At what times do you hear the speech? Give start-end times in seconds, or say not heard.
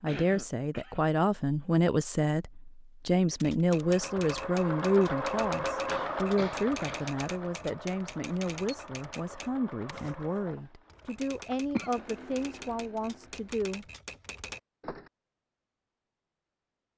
0.0-13.8.